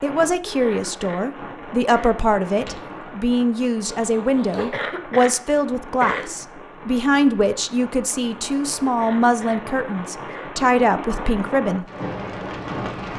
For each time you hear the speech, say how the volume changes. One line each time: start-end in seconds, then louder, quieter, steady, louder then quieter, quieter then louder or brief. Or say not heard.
0.0-11.8 steady.